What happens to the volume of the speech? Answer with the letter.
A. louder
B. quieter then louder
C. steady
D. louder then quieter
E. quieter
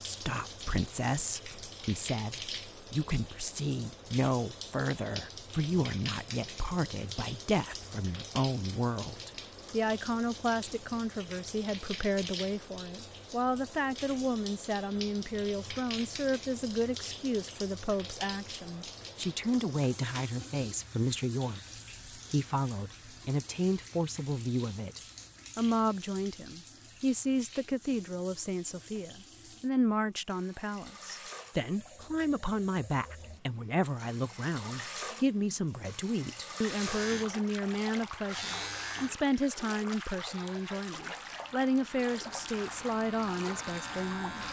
C.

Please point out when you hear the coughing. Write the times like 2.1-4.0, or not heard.
not heard.